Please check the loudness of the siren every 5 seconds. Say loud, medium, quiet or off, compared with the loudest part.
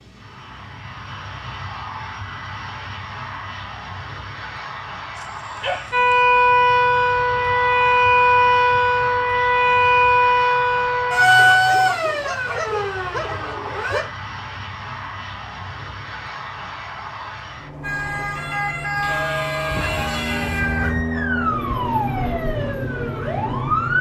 off, loud, loud, medium, medium.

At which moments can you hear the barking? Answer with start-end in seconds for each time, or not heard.
5.2-6.2, 11.3-14.1, 19.0-21.1.